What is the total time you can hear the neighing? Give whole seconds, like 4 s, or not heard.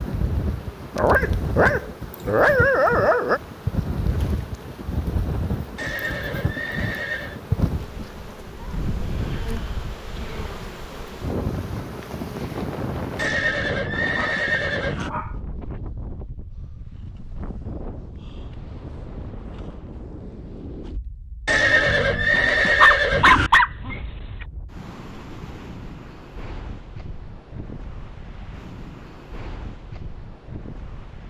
6 s.